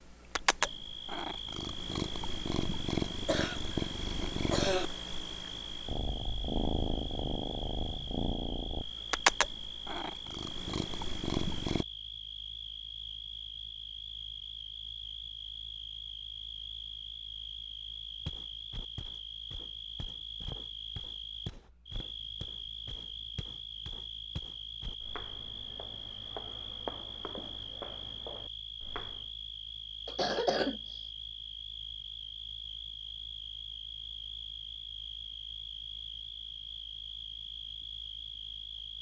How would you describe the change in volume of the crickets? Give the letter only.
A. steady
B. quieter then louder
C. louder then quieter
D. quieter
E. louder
A.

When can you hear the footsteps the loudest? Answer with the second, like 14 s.
27 s.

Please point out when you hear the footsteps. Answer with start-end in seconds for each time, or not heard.
18.2-29.3.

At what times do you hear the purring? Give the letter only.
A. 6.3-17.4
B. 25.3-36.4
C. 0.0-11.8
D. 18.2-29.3
C.